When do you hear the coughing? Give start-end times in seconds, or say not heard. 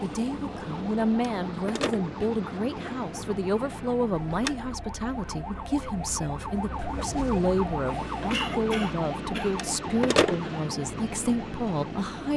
8.3-9.6.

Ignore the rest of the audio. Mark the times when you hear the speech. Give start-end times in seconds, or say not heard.
0.0-12.3.